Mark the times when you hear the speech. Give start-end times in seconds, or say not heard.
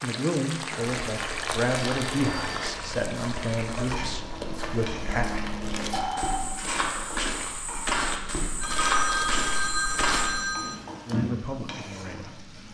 0.0-5.3, 11.1-12.5.